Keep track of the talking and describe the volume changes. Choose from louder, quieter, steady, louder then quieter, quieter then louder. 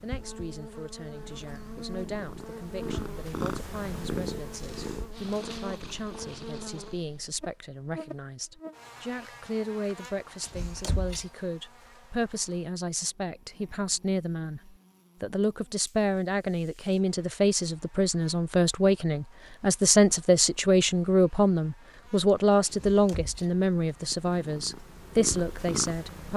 louder.